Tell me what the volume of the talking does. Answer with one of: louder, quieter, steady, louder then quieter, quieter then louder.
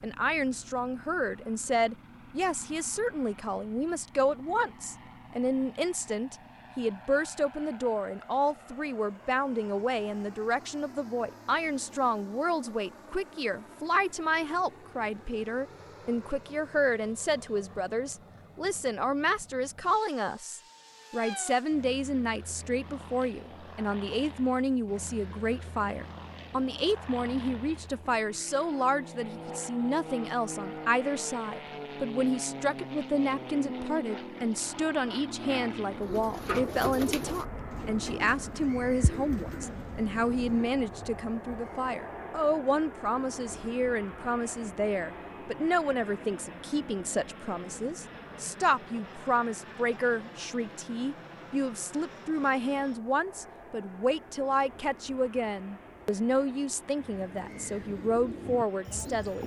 steady.